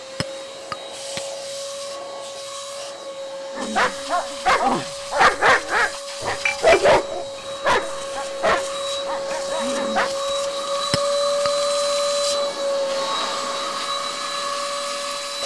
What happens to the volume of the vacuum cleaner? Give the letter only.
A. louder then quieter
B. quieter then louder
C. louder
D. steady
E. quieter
C.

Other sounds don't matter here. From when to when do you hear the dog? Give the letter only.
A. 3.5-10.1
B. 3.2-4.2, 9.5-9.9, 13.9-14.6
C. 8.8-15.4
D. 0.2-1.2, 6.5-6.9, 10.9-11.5
A.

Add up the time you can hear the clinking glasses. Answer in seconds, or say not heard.
2 s.